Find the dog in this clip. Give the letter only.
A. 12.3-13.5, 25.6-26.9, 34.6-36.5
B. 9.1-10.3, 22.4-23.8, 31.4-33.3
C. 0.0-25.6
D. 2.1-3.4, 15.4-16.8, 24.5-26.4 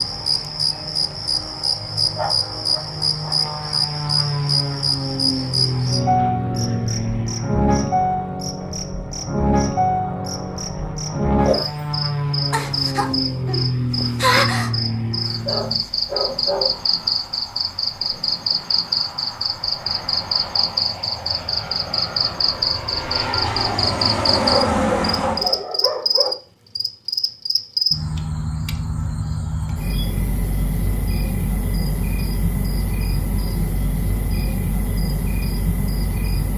D.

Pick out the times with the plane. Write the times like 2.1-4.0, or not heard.
0.0-25.6.